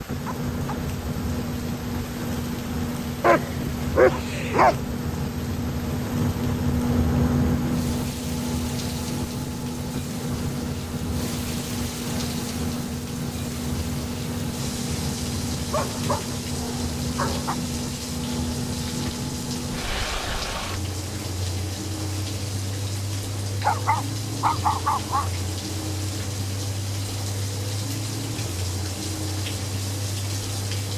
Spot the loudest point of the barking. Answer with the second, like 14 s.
4 s.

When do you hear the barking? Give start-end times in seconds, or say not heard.
3.2-4.8, 15.7-17.6, 23.6-25.3.